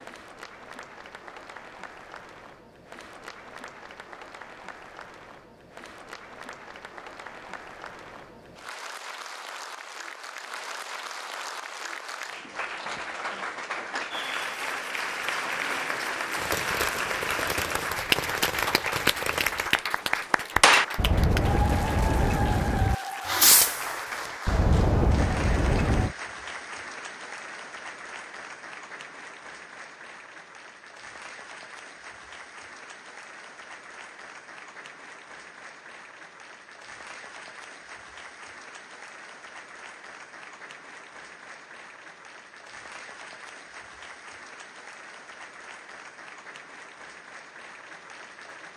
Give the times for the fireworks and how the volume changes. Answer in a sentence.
The fireworks can be heard from 16.4 to 26.1 s, getting louder.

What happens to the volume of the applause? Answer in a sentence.
The loudness of the applause goes up, then down.